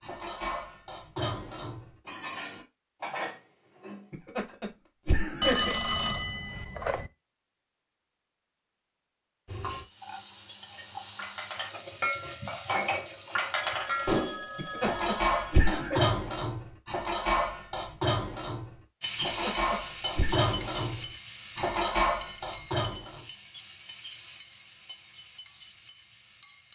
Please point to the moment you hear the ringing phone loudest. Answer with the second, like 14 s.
6 s.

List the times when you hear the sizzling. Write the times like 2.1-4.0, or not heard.
9.4-14.4, 19.0-26.7.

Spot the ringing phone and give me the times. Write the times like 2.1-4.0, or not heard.
5.4-7.1, 13.6-15.4.